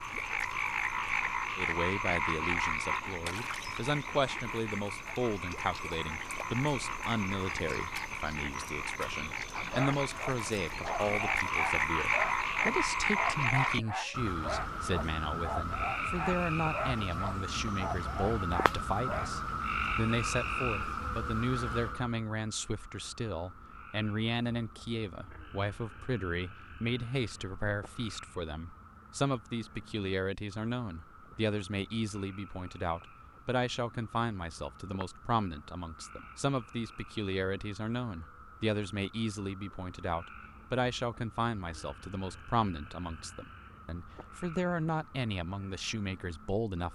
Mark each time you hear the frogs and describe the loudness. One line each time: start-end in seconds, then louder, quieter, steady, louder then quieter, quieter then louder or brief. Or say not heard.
0.0-46.8 quieter.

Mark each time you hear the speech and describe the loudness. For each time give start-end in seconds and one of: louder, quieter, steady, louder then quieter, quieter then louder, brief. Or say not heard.
1.6-46.8 steady.